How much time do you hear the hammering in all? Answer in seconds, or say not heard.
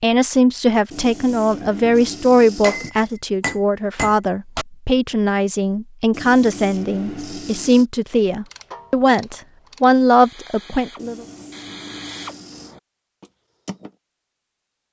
2 s.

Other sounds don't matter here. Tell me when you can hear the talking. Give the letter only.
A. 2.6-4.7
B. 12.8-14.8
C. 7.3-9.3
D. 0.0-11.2
D.